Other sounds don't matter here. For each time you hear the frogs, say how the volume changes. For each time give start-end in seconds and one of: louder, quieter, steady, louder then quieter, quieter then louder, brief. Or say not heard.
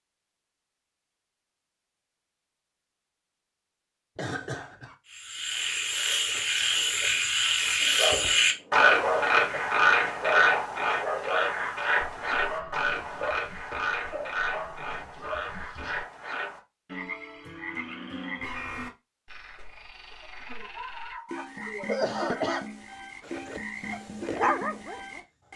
5.1-25.5 quieter.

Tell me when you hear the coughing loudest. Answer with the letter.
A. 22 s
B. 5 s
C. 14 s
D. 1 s
A.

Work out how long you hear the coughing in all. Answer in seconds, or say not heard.
4 s.